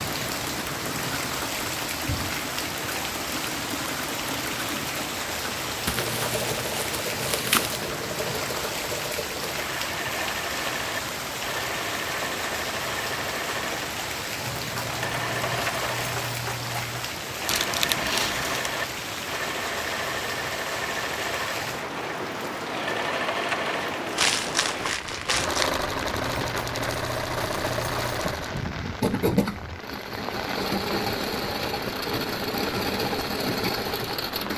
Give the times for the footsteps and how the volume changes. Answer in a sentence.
The footsteps can't be heard in this clip.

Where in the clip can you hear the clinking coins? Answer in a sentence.
The clinking coins can be heard from 6.0 to 6.5 s, from 14.6 to 17.1 s and from 26.4 to 28.2 s.